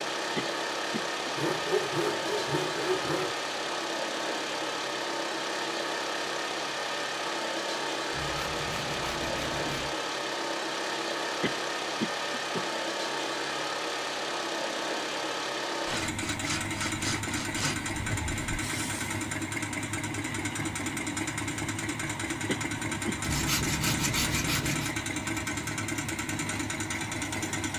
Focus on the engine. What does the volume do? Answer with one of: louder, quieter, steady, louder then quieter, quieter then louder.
steady.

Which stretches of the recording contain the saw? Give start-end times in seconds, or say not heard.
1.4-3.4, 8.1-9.9, 15.8-18.4, 23.2-24.9.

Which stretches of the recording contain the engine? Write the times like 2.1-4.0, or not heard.
0.0-27.7.